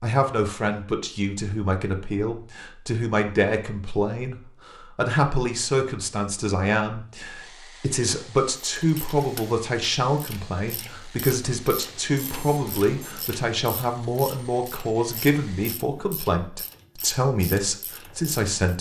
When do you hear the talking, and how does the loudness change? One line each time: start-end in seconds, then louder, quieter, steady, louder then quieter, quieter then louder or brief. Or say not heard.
0.0-18.7 steady.